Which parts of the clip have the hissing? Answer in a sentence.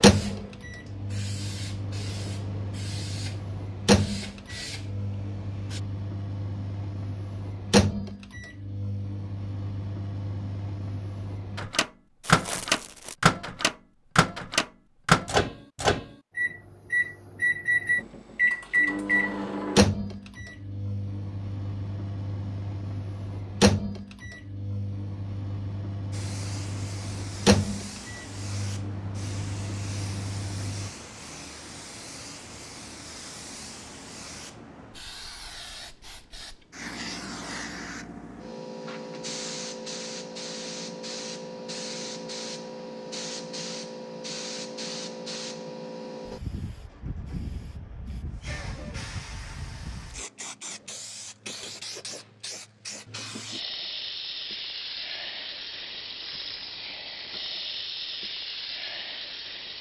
You can hear the hissing from 0.0 to 5.8 s and from 26.1 to 59.7 s.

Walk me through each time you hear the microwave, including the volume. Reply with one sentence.
The microwave can be heard from 0.0 to 30.9 s, getting louder then quieter.